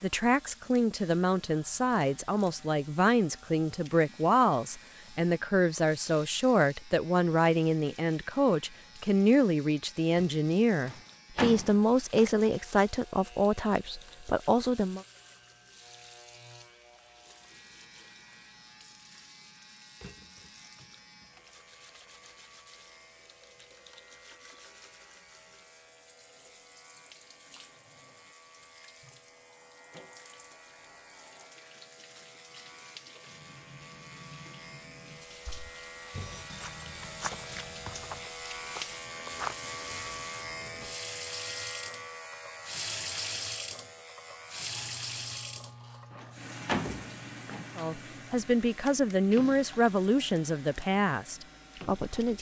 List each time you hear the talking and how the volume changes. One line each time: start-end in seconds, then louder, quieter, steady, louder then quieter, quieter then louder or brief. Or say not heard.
0.0-15.1 steady
47.8-52.3 quieter.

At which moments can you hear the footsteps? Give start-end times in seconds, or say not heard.
35.5-40.8.